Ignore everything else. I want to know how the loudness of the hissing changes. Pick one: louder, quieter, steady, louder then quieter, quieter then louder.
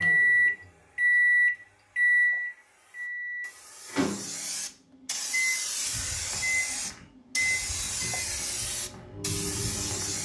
louder.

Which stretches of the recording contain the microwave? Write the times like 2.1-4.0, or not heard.
0.0-10.2.